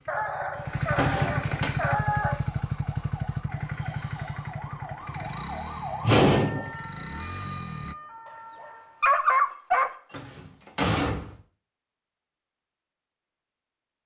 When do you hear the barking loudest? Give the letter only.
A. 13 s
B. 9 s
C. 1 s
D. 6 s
B.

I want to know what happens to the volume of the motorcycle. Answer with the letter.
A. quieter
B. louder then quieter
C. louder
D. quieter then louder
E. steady
A.